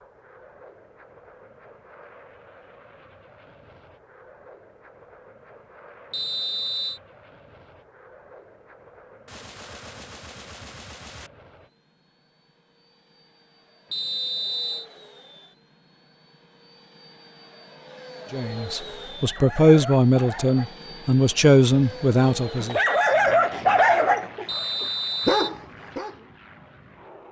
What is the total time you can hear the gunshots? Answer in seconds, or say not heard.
2 s.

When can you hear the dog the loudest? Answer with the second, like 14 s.
24 s.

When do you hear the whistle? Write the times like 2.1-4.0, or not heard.
6.1-7.0, 13.9-14.9, 24.4-25.6.